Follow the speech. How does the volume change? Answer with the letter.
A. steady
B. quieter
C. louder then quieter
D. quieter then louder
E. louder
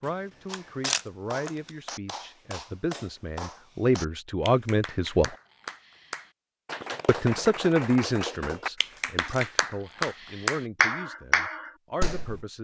C.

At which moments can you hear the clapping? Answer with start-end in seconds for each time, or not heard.
0.5-12.4.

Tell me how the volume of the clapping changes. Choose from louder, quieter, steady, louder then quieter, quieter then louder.
louder.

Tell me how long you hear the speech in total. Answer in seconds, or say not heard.
11 s.